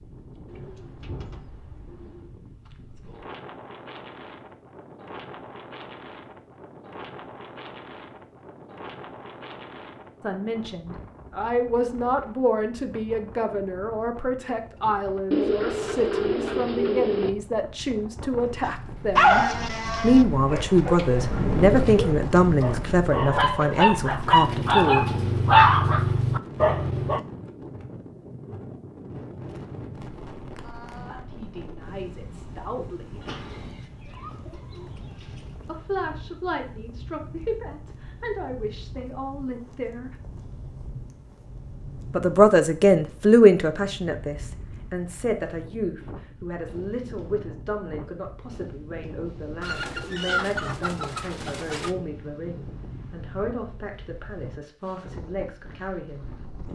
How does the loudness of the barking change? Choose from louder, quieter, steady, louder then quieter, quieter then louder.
quieter then louder.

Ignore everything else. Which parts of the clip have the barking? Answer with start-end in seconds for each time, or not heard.
18.6-27.2.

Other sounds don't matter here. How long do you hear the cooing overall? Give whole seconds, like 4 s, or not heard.
9 s.